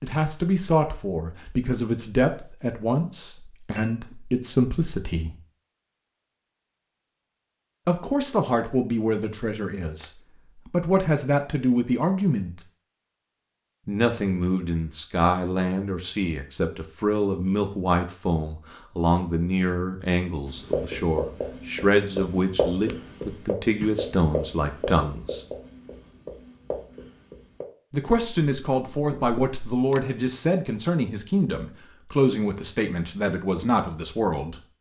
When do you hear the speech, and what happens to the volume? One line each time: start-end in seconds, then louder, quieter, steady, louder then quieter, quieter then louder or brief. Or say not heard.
0.0-5.3 quieter then louder
7.8-12.6 quieter then louder
13.8-25.4 steady
27.9-34.5 steady.